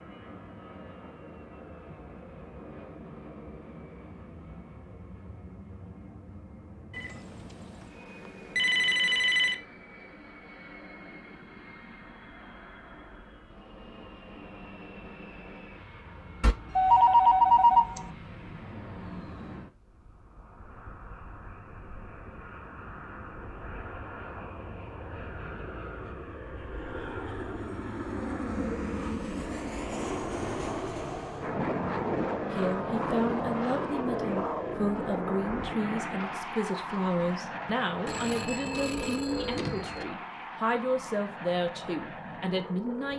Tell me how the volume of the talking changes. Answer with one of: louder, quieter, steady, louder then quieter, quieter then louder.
steady.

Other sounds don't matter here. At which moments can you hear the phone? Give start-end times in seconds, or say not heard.
6.9-9.6, 16.4-18.1, 38.0-40.0.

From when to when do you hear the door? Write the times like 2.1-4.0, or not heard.
not heard.